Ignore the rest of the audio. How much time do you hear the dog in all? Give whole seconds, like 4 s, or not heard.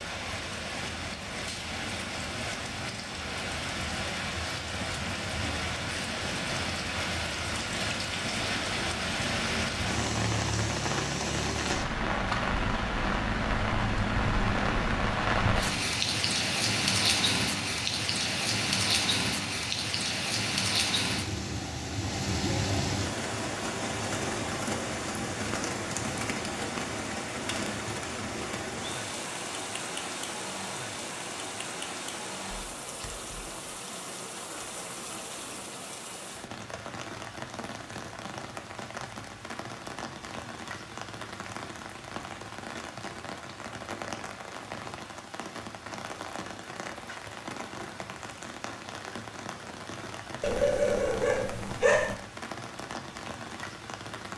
2 s.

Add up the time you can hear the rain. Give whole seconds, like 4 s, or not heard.
54 s.